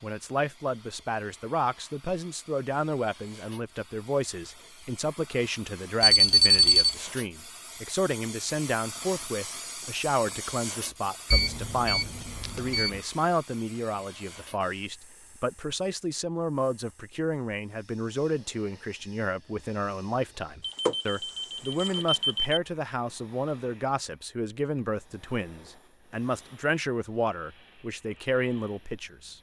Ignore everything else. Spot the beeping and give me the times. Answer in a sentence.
The beeping can be heard from 6.0 to 7.0 s, from 11.3 to 13.0 s and from 20.6 to 22.6 s.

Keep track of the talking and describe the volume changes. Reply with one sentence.
The volume of the talking stays about the same.